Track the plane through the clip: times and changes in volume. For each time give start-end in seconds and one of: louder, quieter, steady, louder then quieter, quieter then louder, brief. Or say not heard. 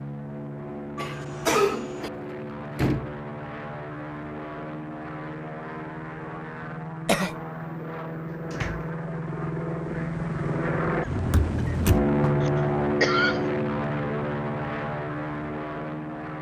0.0-16.3 louder.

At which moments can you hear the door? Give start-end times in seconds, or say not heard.
2.8-3.2, 8.5-8.9, 11.3-12.1.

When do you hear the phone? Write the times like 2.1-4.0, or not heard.
not heard.